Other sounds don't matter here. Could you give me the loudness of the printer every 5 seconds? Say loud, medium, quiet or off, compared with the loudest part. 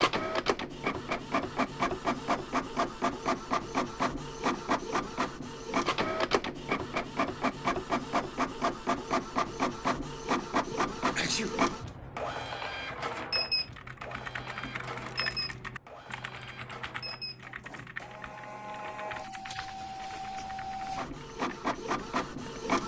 loud, loud, loud, medium, loud.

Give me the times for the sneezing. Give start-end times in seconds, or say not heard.
10.7-11.6.